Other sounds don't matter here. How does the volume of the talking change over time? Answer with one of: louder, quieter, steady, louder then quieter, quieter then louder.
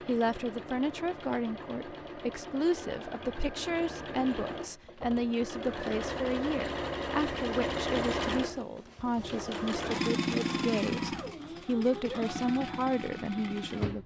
steady.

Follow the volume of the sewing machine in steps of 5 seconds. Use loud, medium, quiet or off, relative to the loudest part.
medium, loud, loud.